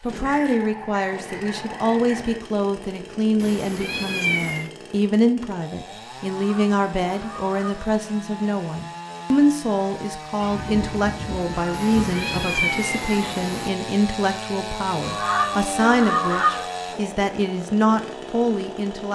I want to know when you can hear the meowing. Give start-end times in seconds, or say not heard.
3.4-4.7, 11.7-13.7.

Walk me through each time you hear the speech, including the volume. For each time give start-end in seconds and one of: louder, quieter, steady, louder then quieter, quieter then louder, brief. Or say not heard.
0.0-19.1 steady.